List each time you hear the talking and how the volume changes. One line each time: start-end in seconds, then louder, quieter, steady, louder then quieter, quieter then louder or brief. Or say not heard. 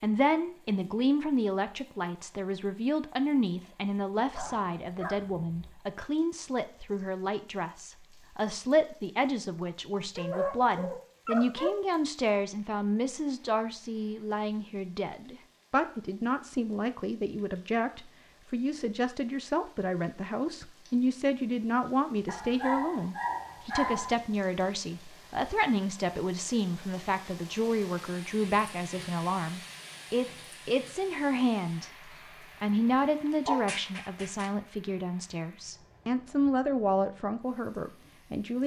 0.0-38.6 steady.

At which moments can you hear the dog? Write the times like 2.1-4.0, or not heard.
4.3-5.7, 10.0-11.8, 22.2-24.1, 33.5-34.5.